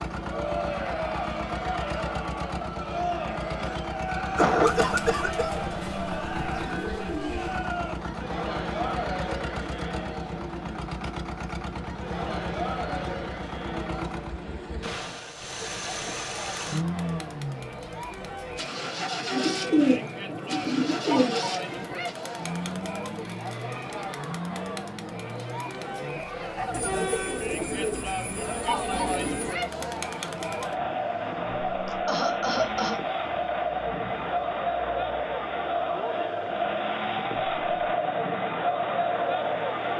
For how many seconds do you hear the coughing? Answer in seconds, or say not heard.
2 s.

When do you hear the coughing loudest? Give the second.
5 s.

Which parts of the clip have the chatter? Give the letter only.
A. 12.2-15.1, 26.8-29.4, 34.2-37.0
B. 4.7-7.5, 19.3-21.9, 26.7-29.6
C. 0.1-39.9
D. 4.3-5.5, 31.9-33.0
C.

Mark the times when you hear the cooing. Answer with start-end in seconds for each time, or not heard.
4.7-7.5, 19.3-21.9, 26.7-29.6.